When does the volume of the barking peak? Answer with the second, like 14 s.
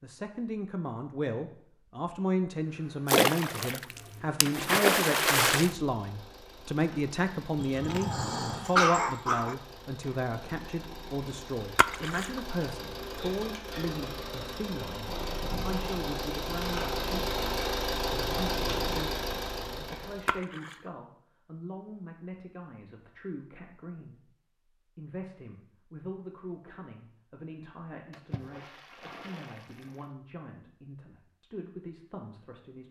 9 s.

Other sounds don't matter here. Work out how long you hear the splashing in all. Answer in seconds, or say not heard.
6 s.